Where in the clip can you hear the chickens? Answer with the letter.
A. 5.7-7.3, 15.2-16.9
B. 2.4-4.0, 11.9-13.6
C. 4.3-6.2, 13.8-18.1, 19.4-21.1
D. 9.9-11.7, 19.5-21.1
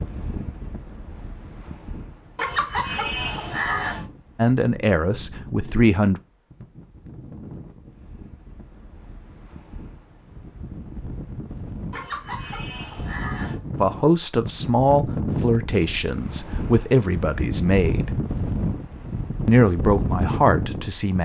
B.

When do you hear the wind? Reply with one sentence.
The wind can be heard from 0.0 to 21.1 s.